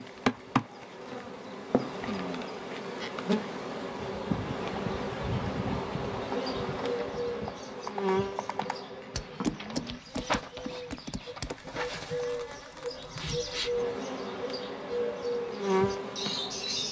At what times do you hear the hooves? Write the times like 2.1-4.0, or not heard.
4.0-11.6.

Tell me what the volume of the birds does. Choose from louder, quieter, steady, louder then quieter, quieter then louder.
quieter then louder.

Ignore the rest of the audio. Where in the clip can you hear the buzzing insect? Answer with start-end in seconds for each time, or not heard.
0.0-16.8.